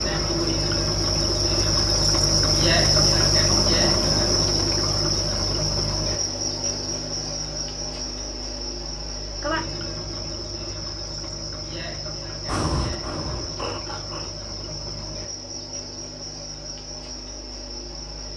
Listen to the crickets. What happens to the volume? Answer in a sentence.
The volume of the crickets goes down.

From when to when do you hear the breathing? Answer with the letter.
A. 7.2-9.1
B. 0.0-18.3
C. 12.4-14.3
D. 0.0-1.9
C.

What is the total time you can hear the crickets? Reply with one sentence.
The crickets can be heard for 18 seconds in total.